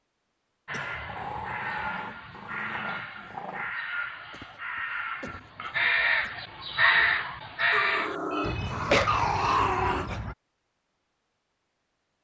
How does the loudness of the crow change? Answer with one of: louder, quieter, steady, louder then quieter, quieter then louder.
louder then quieter.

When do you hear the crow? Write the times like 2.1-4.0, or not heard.
0.7-10.3.